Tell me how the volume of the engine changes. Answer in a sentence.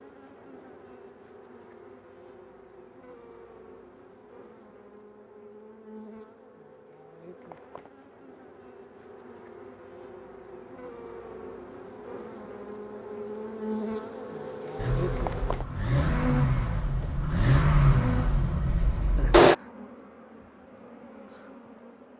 The loudness of the engine goes up, then down.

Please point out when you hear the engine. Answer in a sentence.
The engine can be heard from 14.8 to 19.6 s.